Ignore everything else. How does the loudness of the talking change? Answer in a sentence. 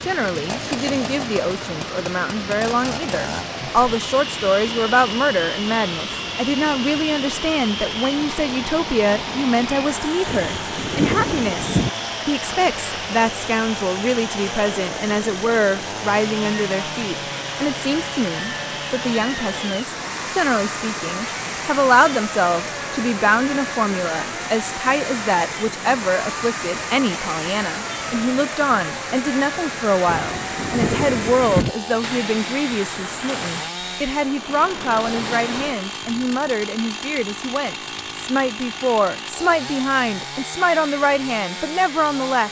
The volume of the talking stays about the same.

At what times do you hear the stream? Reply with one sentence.
The stream can be heard from 0.0 to 35.8 s.